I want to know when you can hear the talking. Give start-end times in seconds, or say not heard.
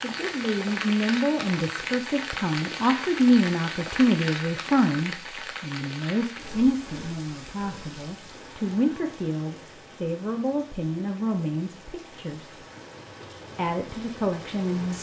0.0-12.6, 13.6-14.9.